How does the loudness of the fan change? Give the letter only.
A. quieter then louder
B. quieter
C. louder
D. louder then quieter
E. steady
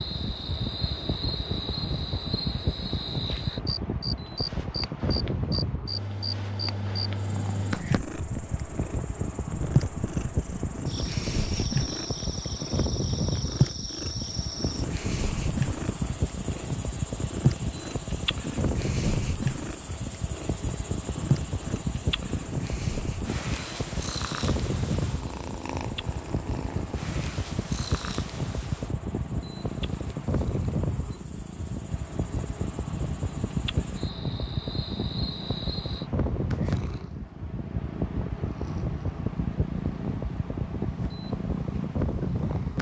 E.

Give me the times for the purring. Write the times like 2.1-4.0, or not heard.
7.2-42.7.